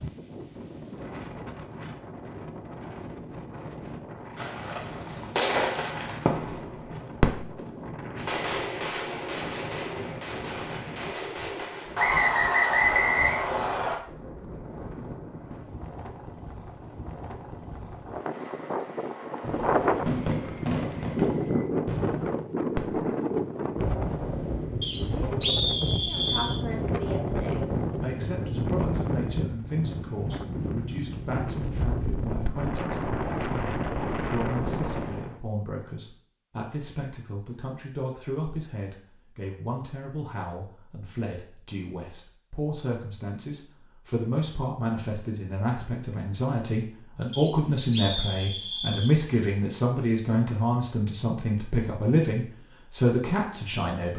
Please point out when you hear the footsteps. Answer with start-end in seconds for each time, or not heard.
not heard.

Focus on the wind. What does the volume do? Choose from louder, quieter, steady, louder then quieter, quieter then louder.
louder.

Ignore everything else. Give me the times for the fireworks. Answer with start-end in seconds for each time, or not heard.
4.3-12.2, 19.4-23.1.